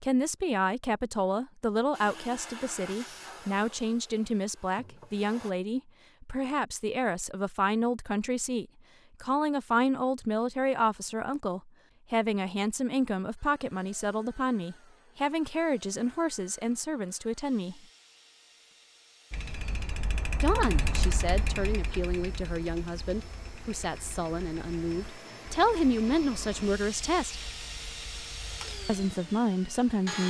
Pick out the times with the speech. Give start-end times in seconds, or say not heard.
0.0-17.8, 20.4-27.4, 28.9-30.2.